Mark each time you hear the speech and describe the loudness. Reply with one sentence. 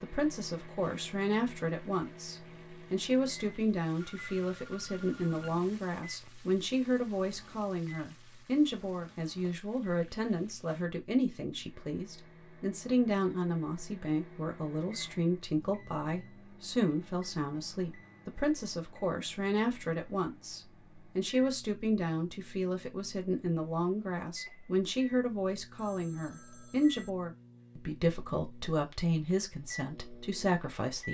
The speech can be heard from 0.0 to 31.0 s, at a steady volume.